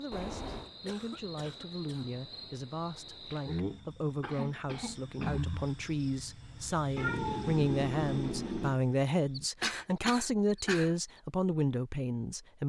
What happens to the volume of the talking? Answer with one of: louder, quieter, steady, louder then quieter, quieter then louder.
louder.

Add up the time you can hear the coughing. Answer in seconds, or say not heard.
4 s.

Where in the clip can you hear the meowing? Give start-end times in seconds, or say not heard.
0.1-0.7, 7.0-8.8.